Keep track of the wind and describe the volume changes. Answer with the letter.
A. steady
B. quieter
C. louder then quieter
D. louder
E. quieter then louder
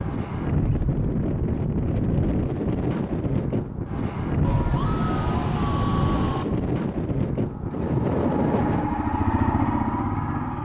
A.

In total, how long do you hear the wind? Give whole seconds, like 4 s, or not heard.
9 s.